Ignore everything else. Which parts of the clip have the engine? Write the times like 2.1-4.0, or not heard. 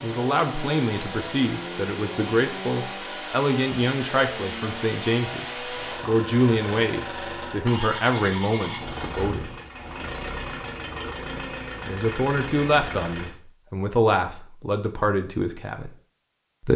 0.0-13.3.